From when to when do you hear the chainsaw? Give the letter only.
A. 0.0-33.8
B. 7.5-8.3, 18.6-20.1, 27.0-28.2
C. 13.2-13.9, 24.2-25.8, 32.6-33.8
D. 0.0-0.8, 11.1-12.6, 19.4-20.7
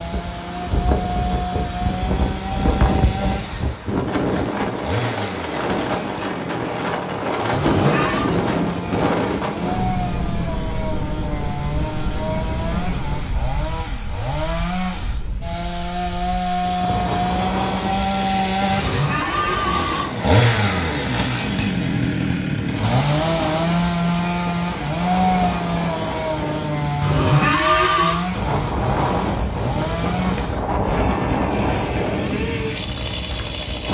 A.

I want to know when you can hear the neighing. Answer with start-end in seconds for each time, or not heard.
7.5-8.3, 18.6-20.1, 27.0-28.2.